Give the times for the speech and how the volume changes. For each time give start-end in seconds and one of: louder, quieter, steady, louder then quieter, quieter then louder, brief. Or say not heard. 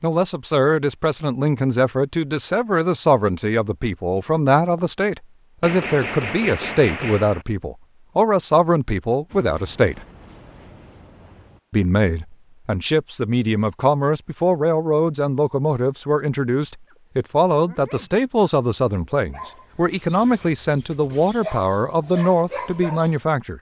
0.0-10.0 steady
11.7-23.5 steady.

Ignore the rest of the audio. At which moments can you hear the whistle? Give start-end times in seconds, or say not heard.
not heard.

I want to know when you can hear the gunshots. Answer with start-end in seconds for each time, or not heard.
5.6-7.5.